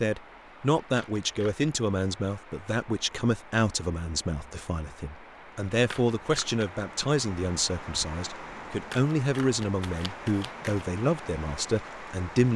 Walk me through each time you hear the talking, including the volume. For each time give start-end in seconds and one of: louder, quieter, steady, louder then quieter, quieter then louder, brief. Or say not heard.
0.0-12.5 steady.